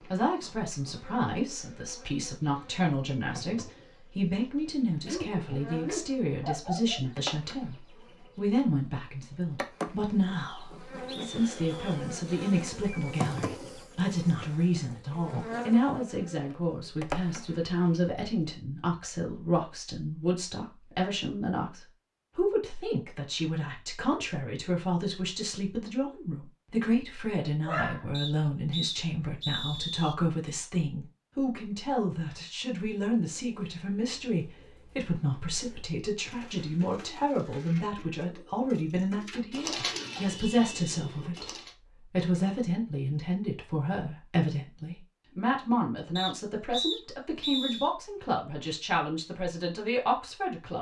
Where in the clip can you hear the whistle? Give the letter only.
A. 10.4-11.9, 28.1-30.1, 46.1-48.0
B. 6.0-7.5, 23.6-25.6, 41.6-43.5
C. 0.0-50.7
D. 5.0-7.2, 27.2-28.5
A.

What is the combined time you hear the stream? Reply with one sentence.
You can't hear the stream here.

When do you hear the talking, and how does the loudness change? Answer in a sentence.
You can hear the talking from 0.0 to 50.7 s, at a steady volume.